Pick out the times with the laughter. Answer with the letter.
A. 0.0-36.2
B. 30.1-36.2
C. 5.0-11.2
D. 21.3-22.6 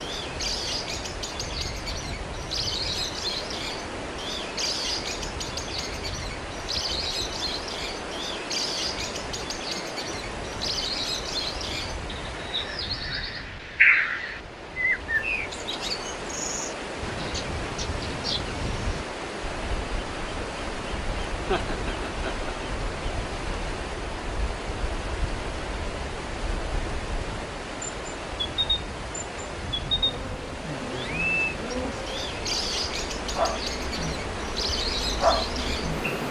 D.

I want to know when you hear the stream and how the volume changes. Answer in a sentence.
The stream can be heard from 0.0 to 36.2 s, at a steady volume.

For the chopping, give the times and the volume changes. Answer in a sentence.
You can't hear the chopping here.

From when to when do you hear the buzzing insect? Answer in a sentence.
The buzzing insect can be heard from 30.1 to 36.2 s.